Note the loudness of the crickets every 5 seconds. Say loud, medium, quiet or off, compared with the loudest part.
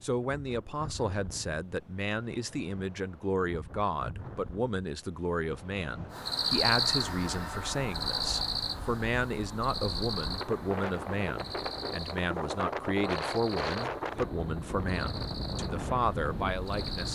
off, loud, medium, medium.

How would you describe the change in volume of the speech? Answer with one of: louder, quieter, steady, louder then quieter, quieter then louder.
steady.